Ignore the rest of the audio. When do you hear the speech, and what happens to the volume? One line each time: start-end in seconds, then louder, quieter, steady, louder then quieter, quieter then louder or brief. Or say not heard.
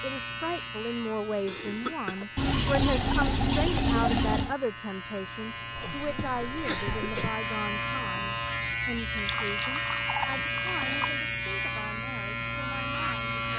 0.0-13.4 quieter.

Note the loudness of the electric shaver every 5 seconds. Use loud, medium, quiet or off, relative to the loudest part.
medium, loud, loud.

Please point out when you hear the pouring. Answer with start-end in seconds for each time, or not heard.
2.4-4.5, 9.1-11.1.